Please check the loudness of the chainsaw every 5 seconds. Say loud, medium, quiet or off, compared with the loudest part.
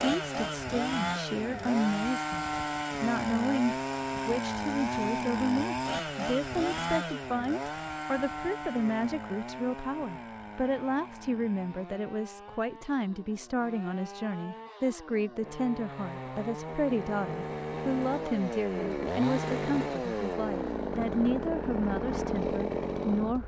loud, loud, quiet, loud, loud.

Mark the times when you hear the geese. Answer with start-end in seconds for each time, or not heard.
not heard.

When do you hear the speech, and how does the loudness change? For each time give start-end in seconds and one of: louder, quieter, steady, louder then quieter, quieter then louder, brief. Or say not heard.
0.0-23.4 steady.